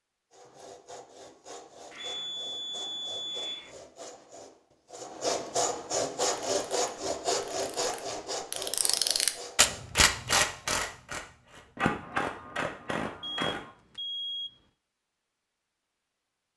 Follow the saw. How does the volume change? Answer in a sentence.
The volume of the saw goes up, then down.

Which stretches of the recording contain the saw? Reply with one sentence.
You can hear the saw from 0.3 to 10.0 s.